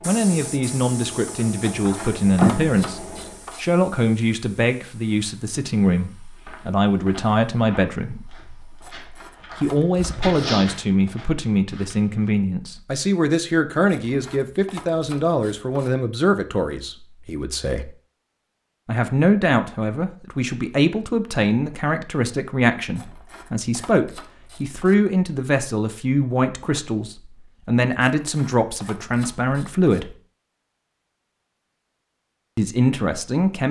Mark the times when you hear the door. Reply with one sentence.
The door can be heard from 1.2 to 2.8 s.